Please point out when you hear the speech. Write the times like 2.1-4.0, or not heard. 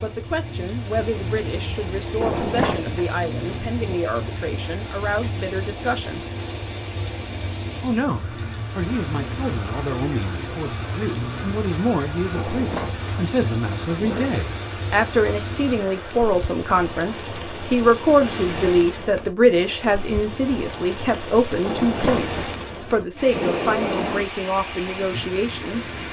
0.0-6.2, 7.8-25.9.